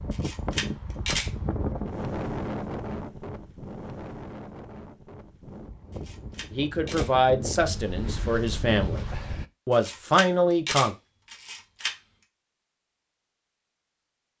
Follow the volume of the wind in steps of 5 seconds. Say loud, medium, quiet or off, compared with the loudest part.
loud, loud, off.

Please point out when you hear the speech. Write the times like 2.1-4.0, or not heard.
6.5-9.1, 9.7-10.9.